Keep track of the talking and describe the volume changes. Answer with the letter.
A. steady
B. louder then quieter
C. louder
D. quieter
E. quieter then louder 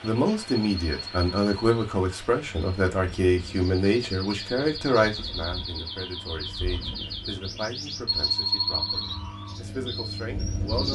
D.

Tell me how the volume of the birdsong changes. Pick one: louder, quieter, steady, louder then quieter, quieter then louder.
louder.